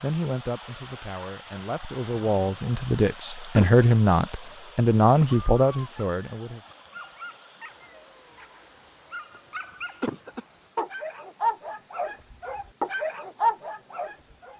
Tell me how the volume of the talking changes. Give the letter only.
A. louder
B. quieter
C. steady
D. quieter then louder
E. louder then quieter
A.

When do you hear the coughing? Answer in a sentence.
You can hear the coughing from 3.5 to 4.0 s and from 10.0 to 10.4 s.